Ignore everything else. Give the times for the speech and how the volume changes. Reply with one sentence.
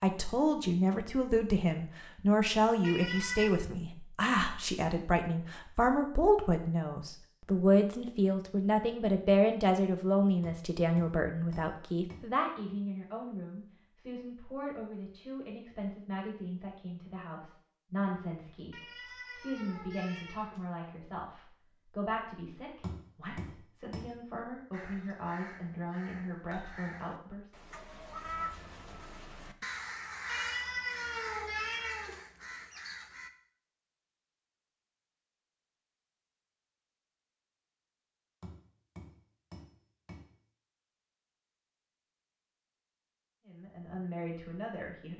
You can hear the speech from 0.0 to 27.5 s, getting quieter; and briefly from 43.5 to 45.1 s.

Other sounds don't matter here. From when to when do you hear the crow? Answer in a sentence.
The crow can be heard from 24.7 to 33.3 s.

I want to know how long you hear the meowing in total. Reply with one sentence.
You can hear the meowing for 5 seconds altogether.